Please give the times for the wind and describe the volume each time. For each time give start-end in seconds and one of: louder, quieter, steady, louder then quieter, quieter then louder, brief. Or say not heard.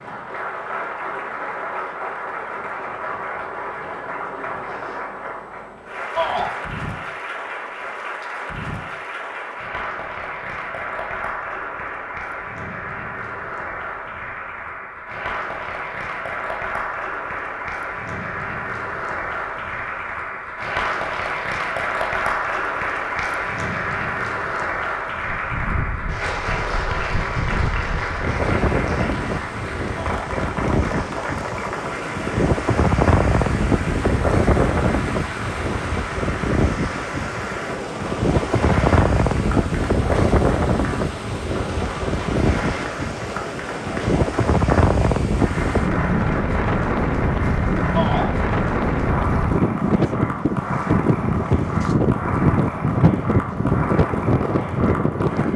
25.1-55.5 louder.